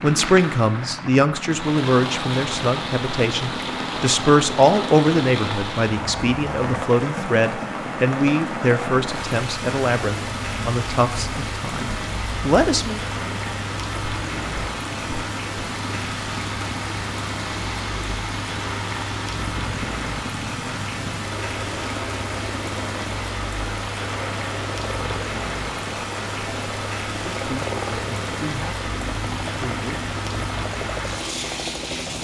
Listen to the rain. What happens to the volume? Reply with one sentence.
The volume of the rain stays about the same.